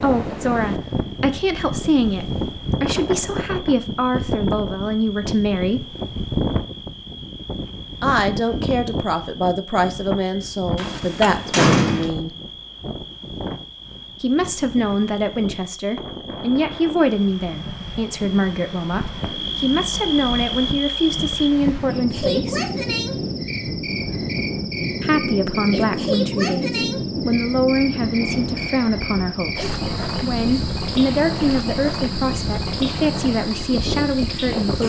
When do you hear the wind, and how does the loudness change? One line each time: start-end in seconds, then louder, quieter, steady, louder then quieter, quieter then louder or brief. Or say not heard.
0.0-34.8 quieter then louder.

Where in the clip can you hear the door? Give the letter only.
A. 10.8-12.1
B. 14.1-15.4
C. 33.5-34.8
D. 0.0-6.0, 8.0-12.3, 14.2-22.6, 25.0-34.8
A.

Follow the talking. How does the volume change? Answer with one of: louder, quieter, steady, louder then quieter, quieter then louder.
steady.